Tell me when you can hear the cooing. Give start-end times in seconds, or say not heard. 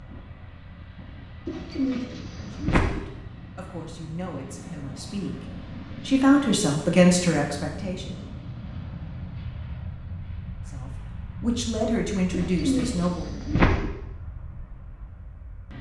1.4-3.0, 12.3-13.9.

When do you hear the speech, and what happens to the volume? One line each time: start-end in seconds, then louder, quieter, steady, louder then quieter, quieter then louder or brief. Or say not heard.
2.5-8.2 louder
10.7-13.4 brief.